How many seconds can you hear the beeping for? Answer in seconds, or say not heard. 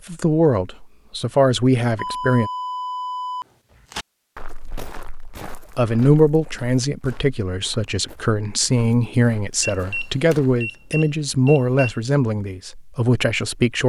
4 s.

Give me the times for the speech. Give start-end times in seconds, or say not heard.
0.1-2.5, 5.8-13.8.